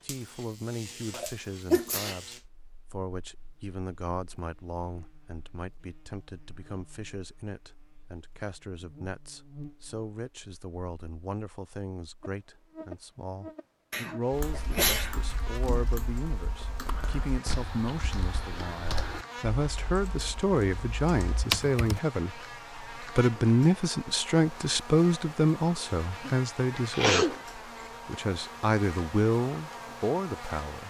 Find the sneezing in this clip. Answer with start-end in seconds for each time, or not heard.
1.1-2.2, 13.9-15.2, 26.2-27.9.